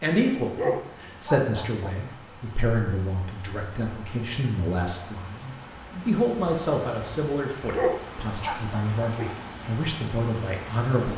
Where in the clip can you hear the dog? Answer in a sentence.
The dog can be heard from 0.6 to 1.9 s and from 7.8 to 9.3 s.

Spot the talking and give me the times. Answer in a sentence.
You can hear the talking from 0.0 to 11.1 s.